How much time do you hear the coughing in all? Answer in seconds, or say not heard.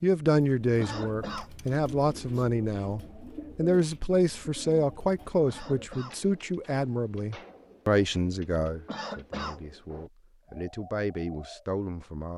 2 s.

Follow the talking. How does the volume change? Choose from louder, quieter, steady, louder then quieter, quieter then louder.
quieter.